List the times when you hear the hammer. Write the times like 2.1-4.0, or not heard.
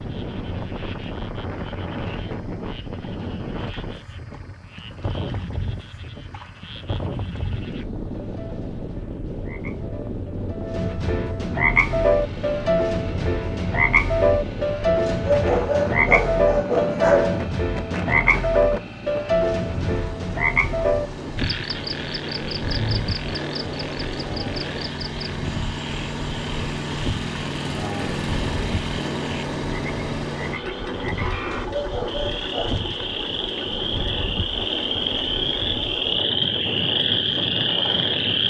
not heard.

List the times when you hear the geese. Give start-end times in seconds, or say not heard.
not heard.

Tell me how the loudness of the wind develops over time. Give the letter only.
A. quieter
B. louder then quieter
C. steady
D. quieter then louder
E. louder
C.